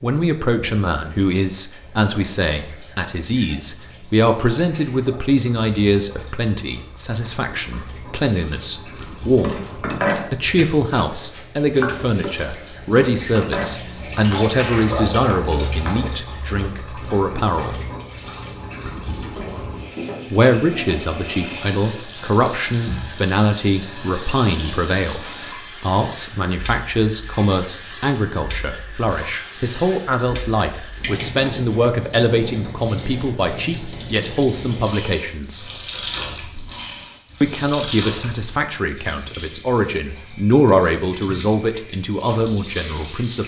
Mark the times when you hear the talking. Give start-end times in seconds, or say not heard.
0.0-17.8, 20.3-35.6, 37.4-43.4.